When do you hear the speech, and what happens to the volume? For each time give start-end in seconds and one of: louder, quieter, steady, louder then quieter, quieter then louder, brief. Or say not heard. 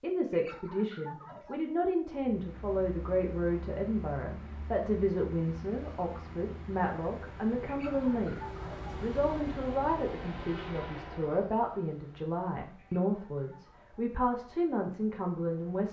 0.0-15.8 steady.